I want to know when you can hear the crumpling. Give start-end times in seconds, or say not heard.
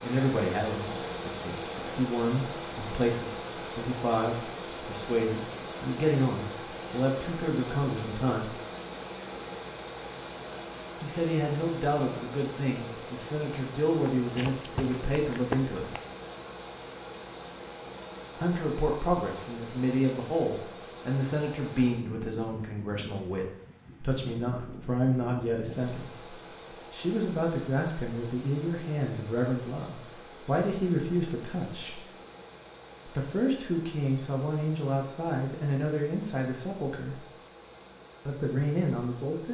14.1-16.0.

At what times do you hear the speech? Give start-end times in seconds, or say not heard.
0.0-8.6, 11.0-15.9, 18.4-32.0, 33.0-37.2, 38.2-39.4.